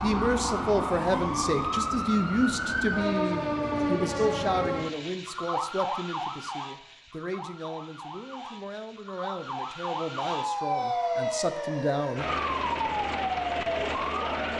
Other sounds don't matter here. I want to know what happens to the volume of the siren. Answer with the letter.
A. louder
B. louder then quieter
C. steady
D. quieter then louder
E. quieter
D.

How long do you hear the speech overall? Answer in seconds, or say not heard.
12 s.